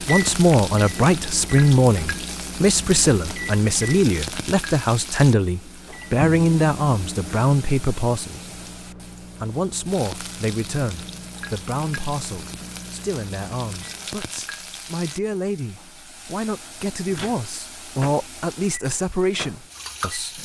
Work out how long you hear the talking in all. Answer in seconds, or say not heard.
19 s.